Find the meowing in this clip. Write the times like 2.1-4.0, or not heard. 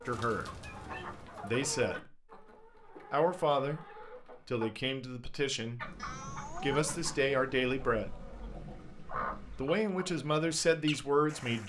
0.3-1.4, 6.0-7.2.